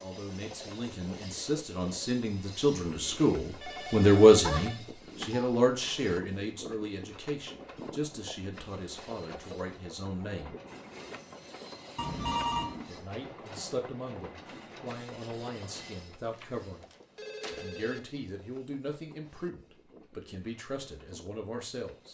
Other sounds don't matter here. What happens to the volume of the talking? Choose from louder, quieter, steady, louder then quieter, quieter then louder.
louder then quieter.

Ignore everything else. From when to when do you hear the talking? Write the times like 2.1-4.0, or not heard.
0.0-10.6, 12.8-16.9, 17.5-22.0.